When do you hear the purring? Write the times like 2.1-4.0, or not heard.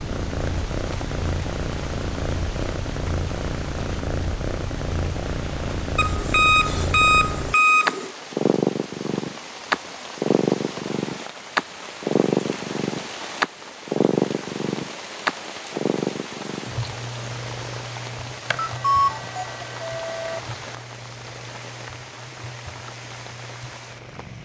0.0-24.3.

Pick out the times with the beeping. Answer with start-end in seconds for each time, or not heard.
6.0-8.1, 18.5-20.4.